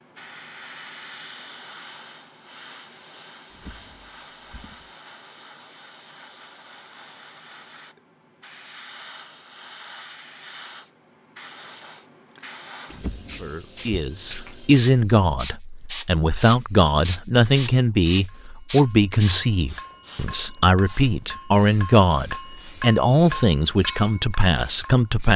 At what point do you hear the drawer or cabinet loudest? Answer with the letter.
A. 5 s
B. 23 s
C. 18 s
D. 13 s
D.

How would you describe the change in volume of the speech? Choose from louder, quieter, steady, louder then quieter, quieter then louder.
steady.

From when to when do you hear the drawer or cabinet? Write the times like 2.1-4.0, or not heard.
3.5-4.9, 12.9-14.1.